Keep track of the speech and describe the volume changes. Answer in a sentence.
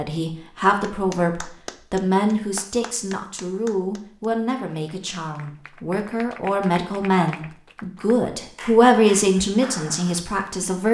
The volume of the speech goes down, then up.